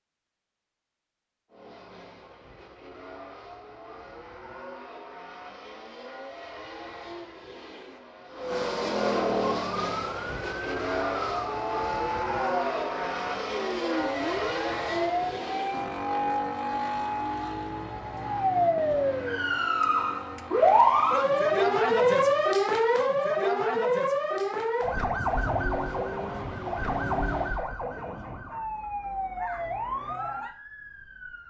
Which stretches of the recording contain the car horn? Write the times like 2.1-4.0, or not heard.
not heard.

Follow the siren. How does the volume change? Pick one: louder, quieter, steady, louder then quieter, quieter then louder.
louder then quieter.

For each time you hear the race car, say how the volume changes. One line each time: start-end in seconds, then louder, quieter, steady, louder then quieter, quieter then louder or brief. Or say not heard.
1.5-22.5 louder then quieter
25.1-27.6 brief.